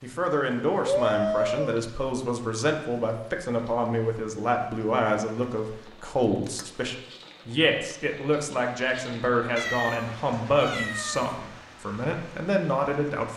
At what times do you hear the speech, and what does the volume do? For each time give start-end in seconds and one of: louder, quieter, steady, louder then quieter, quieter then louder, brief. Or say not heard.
0.0-13.3 steady.